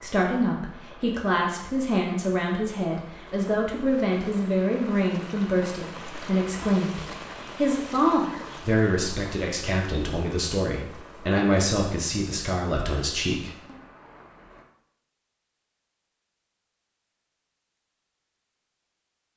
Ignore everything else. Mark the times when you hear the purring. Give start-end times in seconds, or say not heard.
not heard.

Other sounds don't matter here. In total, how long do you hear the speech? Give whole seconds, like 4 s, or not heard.
14 s.